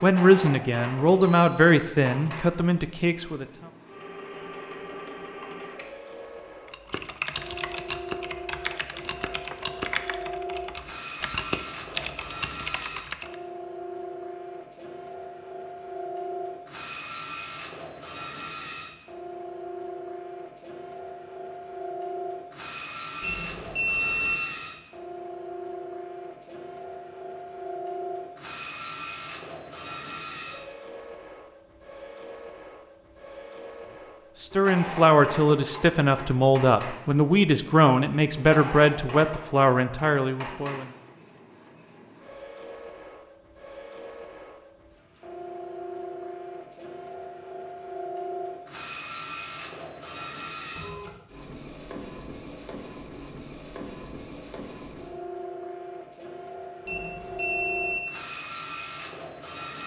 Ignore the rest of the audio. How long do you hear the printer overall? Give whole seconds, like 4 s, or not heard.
60 s.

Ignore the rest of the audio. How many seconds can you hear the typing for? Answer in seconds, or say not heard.
7 s.